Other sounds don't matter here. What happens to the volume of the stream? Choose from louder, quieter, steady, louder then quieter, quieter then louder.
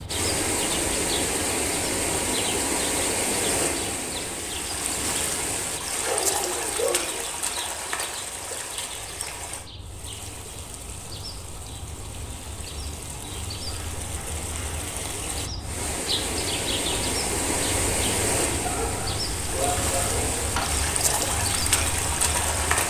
quieter then louder.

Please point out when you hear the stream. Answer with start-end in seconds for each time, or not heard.
0.0-22.8.